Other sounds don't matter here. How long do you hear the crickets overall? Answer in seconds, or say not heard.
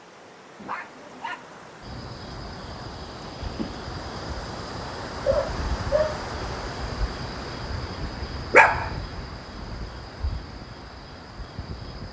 10 s.